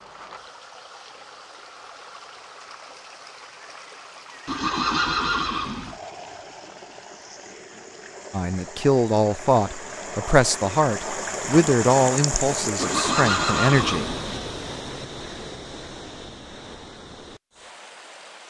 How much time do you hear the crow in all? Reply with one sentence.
The crow can't be heard in this clip.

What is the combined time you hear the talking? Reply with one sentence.
The talking can be heard for 6 seconds in total.